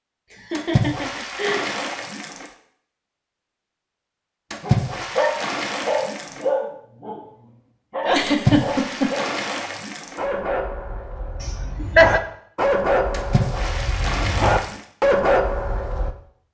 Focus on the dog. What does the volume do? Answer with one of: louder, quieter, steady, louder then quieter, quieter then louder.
quieter then louder.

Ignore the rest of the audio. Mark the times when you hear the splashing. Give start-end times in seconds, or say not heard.
0.6-2.5, 4.5-6.5, 8.2-10.2, 13.1-14.8.